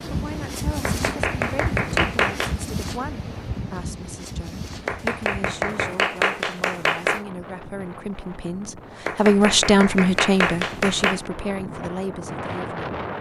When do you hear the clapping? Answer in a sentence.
The clapping can be heard from 0.8 to 2.6 s, from 4.8 to 7.2 s and from 9.1 to 11.3 s.